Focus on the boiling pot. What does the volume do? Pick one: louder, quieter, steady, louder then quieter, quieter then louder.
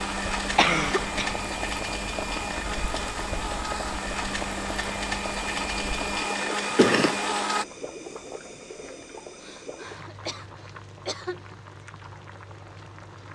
quieter.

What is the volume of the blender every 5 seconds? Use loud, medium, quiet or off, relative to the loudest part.
loud, loud, off.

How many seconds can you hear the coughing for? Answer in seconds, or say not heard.
3 s.